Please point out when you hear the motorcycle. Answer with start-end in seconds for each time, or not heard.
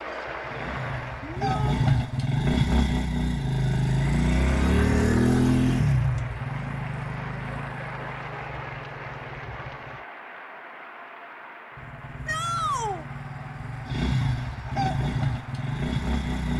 0.0-9.9, 11.8-16.5.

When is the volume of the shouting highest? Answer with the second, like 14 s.
13 s.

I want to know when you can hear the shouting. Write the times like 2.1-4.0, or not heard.
1.2-1.9, 12.2-13.1.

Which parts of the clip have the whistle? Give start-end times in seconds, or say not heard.
not heard.